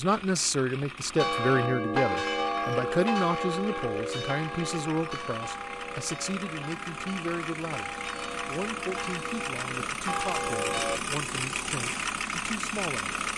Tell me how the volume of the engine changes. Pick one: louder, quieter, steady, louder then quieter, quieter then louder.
louder.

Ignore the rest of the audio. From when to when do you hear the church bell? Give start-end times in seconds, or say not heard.
1.1-11.0.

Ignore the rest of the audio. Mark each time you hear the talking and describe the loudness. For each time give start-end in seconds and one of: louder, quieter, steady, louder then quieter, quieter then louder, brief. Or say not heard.
0.0-13.2 quieter.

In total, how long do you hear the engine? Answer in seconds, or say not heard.
13 s.